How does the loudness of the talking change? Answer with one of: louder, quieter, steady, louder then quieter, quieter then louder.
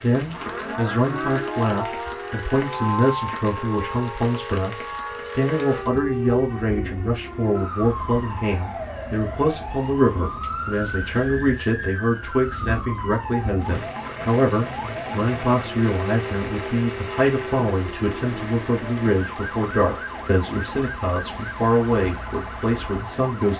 steady.